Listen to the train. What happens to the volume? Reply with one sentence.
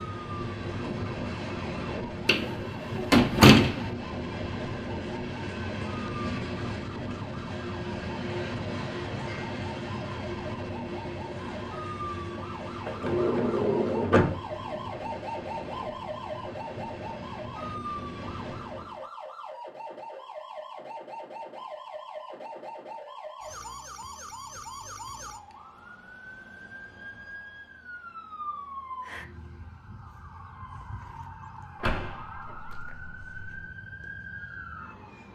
The volume of the train goes down.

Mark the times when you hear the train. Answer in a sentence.
The train can be heard from 0.0 to 19.1 s.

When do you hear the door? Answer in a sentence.
You can hear the door from 2.2 to 3.8 s, from 12.8 to 14.4 s and from 31.8 to 33.6 s.